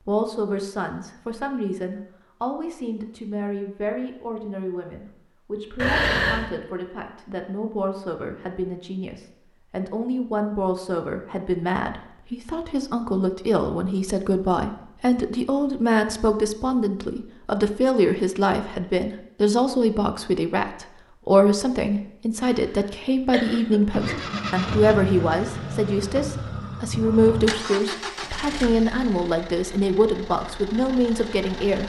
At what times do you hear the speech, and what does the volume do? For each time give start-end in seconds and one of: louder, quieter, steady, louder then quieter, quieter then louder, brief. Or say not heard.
0.1-31.8 louder.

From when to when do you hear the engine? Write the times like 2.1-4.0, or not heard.
23.9-31.8.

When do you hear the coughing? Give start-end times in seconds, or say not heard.
5.8-6.5, 22.5-24.1.